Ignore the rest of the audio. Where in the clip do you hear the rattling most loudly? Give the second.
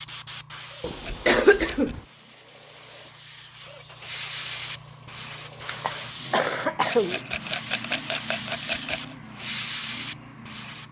8 s.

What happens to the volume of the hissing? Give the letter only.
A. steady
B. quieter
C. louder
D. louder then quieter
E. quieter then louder
C.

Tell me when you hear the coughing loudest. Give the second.
1 s.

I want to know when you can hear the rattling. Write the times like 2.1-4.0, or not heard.
1.0-1.9, 6.8-9.2.